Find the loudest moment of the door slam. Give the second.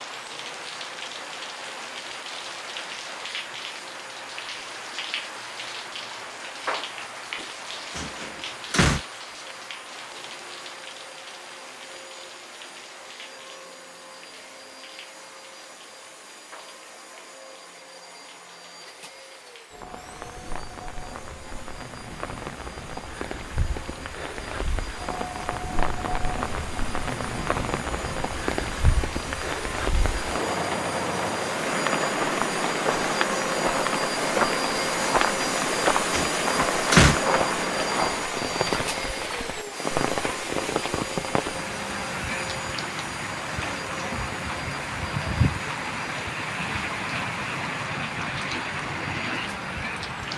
37 s.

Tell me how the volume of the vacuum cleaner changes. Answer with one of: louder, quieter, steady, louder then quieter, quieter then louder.
louder then quieter.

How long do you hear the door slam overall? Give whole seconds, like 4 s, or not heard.
2 s.